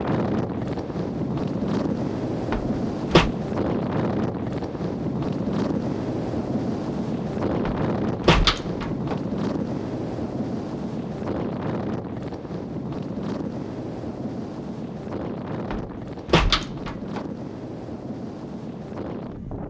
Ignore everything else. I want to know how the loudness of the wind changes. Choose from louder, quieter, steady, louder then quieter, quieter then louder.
quieter.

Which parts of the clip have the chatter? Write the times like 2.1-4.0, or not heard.
not heard.